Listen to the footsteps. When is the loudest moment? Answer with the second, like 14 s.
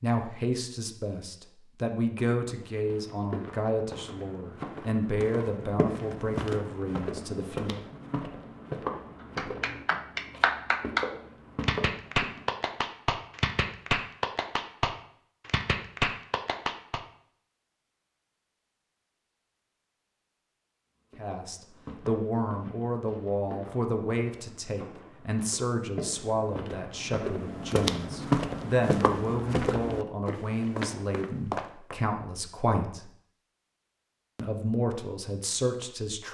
28 s.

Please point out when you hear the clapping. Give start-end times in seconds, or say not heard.
9.3-17.0.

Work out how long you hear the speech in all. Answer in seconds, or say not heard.
22 s.